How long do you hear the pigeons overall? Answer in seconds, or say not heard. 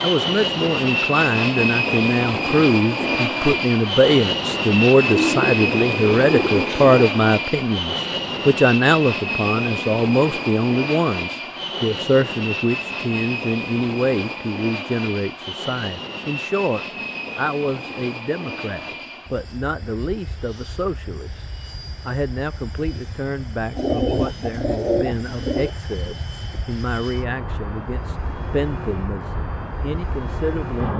4 s.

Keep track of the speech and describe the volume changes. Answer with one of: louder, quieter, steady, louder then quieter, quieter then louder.
quieter.